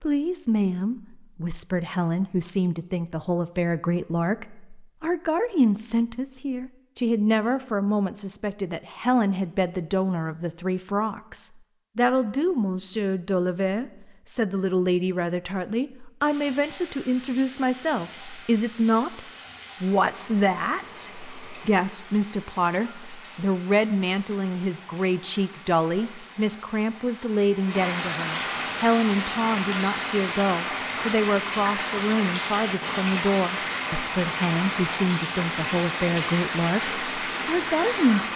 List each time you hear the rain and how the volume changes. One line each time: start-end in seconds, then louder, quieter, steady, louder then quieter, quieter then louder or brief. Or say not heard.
16.2-38.3 louder.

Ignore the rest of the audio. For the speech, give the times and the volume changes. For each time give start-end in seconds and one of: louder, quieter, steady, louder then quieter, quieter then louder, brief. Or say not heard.
0.0-38.3 steady.